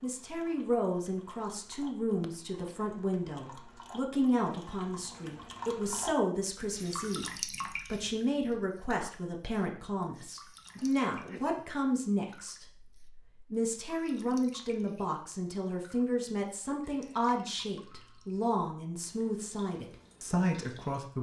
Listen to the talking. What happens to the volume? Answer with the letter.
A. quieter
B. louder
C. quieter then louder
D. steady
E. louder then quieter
D.